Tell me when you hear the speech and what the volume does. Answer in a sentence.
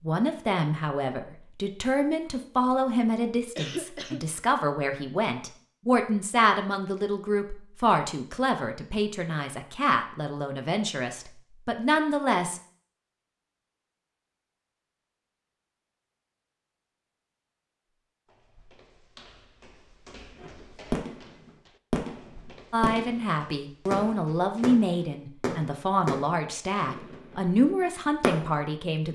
The speech can be heard from 0.0 to 12.6 s, at a steady volume; and from 22.7 to 29.1 s, at a steady volume.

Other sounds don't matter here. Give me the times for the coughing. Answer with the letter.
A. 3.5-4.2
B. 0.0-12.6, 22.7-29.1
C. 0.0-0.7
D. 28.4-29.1
A.